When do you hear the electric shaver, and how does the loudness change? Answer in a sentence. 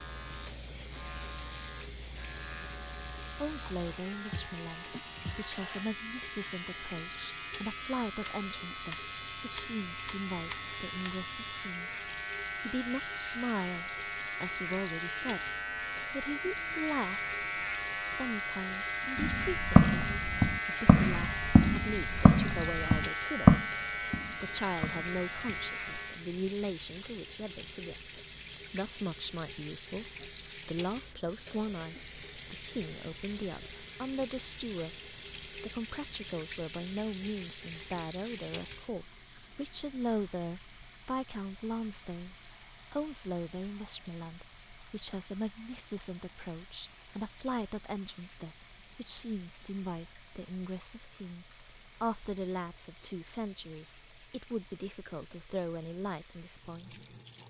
You can hear the electric shaver from 0.0 to 26.2 s, getting louder.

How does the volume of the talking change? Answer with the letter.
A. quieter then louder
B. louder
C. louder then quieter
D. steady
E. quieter
D.